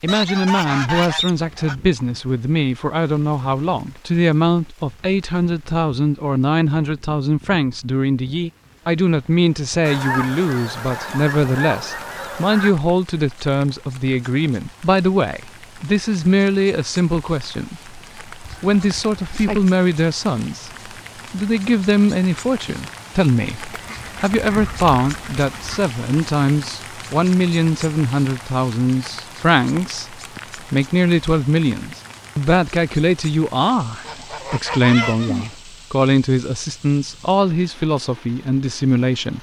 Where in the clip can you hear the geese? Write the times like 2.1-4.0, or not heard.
0.1-1.8, 9.8-12.8, 18.4-19.6, 23.7-25.9, 34.0-35.5.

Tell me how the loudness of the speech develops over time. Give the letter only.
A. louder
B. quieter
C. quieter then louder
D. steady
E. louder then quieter
D.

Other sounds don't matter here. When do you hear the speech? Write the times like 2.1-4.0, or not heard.
0.0-39.3.